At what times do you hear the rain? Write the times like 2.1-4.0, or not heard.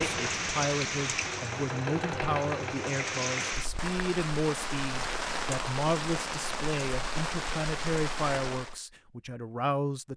0.0-8.8.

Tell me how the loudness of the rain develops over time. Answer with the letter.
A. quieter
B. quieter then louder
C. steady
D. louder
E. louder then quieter
C.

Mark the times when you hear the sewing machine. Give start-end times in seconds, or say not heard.
0.0-3.5.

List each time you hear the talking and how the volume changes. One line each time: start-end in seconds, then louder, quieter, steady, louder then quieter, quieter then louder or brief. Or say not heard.
0.1-10.1 steady.